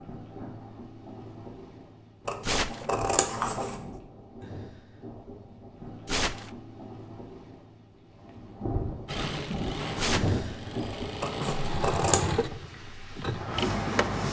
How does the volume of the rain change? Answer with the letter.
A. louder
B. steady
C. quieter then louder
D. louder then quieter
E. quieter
D.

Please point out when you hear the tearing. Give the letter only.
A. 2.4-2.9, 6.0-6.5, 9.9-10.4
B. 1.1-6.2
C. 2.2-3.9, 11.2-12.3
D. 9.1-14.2
A.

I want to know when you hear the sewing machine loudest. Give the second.
14 s.